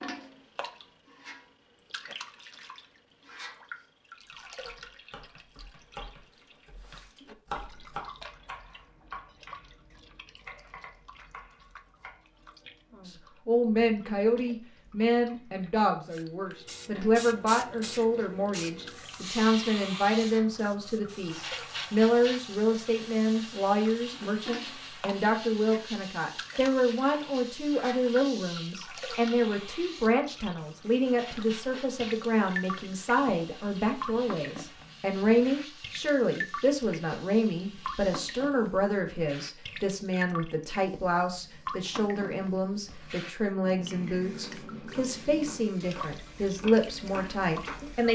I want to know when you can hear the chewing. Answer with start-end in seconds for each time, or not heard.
not heard.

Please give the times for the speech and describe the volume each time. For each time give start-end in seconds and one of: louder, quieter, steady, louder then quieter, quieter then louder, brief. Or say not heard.
13.1-48.1 steady.